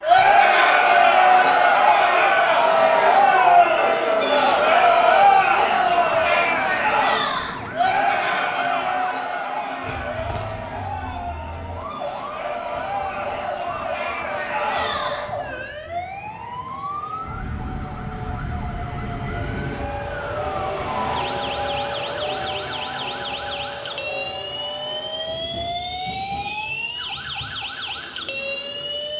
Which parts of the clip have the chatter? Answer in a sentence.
The chatter can be heard from 0.0 to 15.7 s.